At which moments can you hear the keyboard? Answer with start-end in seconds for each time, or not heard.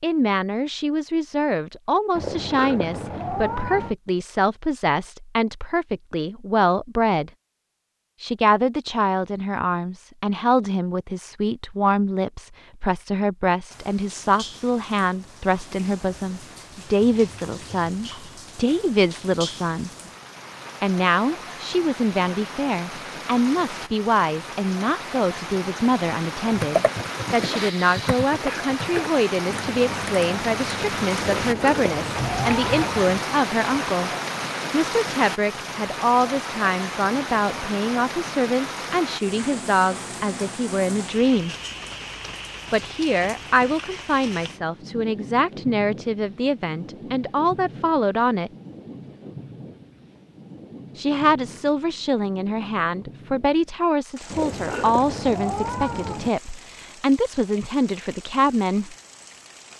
26.5-32.9.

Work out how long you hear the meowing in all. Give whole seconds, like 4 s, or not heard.
6 s.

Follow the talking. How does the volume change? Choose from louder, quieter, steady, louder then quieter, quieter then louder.
steady.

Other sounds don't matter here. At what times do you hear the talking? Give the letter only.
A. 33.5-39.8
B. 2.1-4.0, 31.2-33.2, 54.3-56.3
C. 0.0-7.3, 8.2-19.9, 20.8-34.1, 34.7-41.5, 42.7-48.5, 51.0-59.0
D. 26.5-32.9
C.